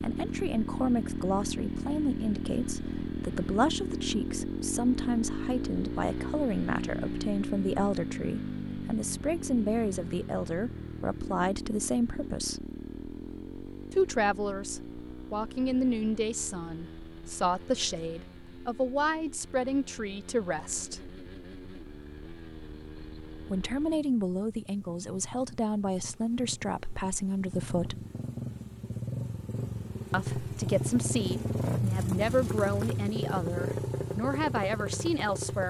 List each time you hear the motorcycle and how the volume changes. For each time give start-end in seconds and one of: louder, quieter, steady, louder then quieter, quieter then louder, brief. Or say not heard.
0.0-35.6 quieter then louder.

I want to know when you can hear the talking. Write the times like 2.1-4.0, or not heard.
0.0-12.7, 13.9-21.1, 23.4-28.1, 30.1-35.6.